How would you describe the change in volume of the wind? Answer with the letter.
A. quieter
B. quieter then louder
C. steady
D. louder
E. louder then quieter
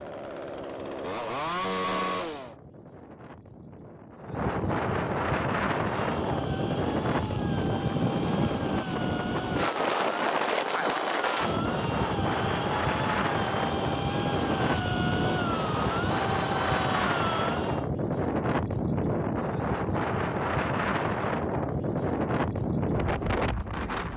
D.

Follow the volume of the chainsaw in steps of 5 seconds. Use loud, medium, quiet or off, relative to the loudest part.
loud, medium, loud, loud, off.